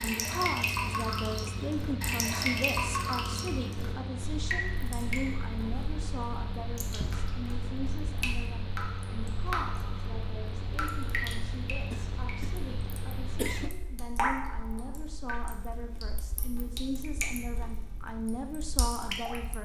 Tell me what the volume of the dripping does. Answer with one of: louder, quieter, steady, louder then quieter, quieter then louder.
quieter.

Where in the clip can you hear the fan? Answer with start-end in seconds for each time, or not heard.
0.0-13.7.